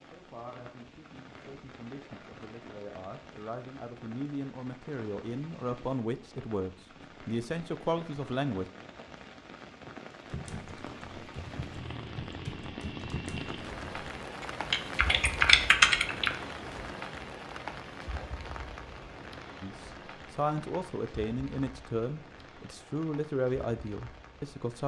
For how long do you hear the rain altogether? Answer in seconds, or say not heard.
25 s.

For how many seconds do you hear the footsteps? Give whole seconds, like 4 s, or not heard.
not heard.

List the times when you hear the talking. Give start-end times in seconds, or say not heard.
0.0-8.7, 19.6-24.8.